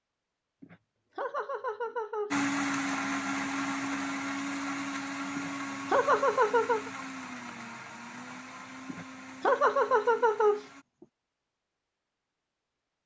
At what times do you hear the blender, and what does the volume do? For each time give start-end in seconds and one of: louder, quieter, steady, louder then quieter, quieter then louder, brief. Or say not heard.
2.3-10.8 quieter.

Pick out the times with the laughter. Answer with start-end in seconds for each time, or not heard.
0.6-2.4, 5.3-6.9, 8.8-10.7.